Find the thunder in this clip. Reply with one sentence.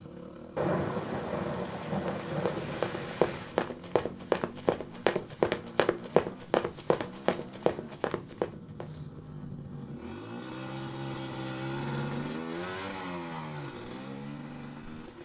The thunder can be heard from 0.6 to 3.6 s.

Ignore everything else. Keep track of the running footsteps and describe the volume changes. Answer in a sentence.
The loudness of the running footsteps stays about the same.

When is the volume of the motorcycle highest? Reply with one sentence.
The volume of the motorcycle peaks at 12 seconds.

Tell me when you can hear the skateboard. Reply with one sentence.
You can't hear the skateboard here.